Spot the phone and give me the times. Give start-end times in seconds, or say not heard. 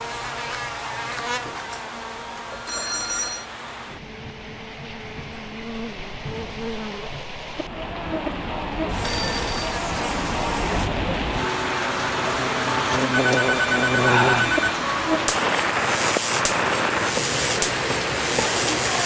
2.5-3.5, 9.0-9.8, 13.1-14.8.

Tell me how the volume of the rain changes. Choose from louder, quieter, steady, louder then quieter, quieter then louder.
louder.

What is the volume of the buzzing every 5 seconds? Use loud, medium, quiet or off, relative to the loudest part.
medium, medium, loud, loud.